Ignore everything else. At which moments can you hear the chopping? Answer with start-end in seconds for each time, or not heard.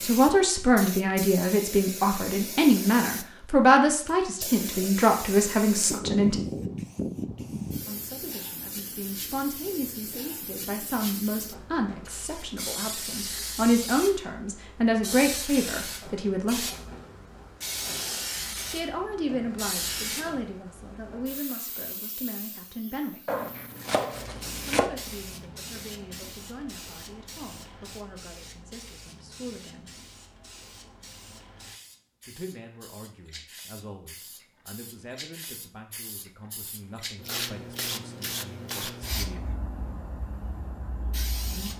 23.2-24.9.